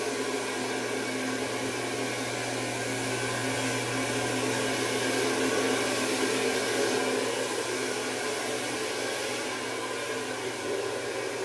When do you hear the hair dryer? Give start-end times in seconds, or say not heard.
0.0-11.4.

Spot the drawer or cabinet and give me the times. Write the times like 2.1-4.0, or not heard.
not heard.